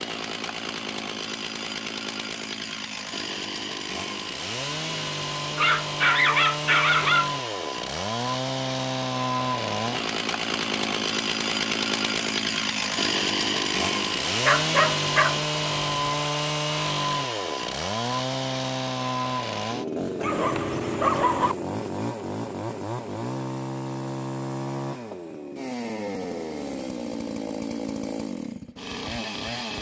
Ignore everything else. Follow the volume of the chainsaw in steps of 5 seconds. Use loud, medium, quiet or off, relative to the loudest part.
medium, loud, loud, loud, medium, medium.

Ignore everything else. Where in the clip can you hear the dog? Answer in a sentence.
You can hear the dog from 5.5 to 7.3 s, from 14.4 to 15.3 s and from 20.2 to 21.6 s.